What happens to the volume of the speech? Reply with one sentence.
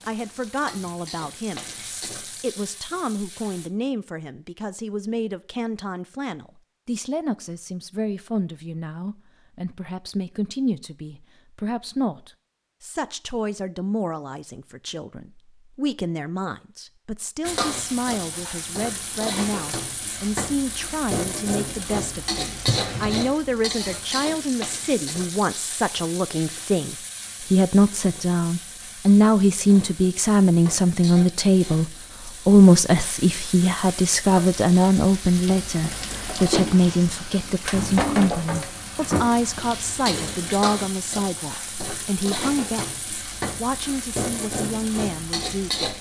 The volume of the speech goes up, then down.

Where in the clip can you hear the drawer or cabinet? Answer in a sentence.
You can hear the drawer or cabinet from 22.6 to 23.3 s.